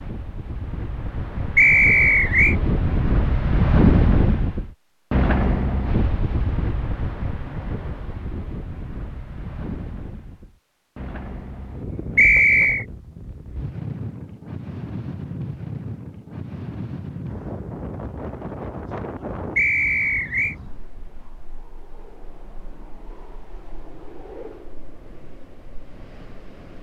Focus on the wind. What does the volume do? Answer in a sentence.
The loudness of the wind goes down.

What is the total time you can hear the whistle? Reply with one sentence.
You can hear the whistle for 3 seconds altogether.